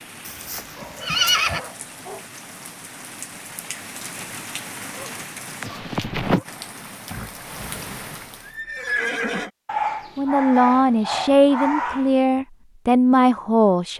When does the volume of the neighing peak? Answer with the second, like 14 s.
1 s.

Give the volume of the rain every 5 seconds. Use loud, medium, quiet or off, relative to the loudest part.
medium, loud, off.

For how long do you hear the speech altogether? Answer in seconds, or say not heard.
4 s.